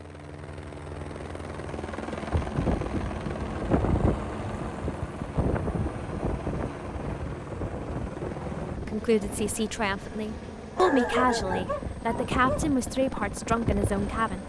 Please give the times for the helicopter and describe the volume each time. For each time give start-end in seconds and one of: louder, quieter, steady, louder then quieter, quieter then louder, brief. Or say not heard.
0.0-14.4 steady.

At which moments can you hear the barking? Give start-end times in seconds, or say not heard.
10.8-12.7.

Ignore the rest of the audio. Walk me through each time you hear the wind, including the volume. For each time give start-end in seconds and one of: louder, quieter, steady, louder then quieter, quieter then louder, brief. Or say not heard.
2.3-14.4 quieter then louder.